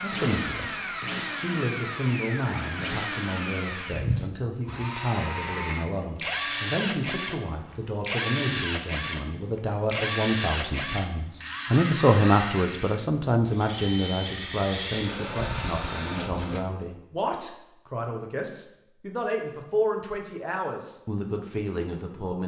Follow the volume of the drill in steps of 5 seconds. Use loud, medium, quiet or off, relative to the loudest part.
loud, loud, loud, loud, off.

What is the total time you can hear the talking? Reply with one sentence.
You can hear the talking for 22 seconds altogether.